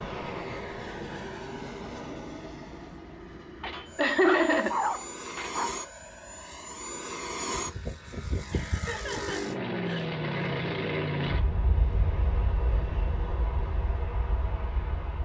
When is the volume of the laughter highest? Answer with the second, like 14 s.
4 s.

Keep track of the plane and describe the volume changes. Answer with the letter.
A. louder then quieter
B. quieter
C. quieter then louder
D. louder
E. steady
A.